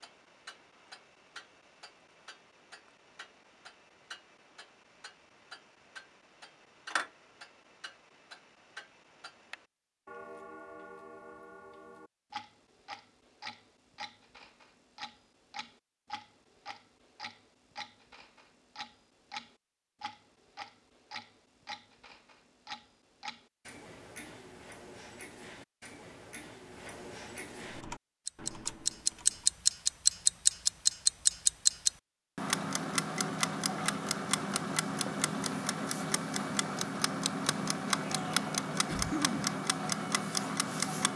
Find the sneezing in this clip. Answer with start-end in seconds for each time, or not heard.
38.7-39.5.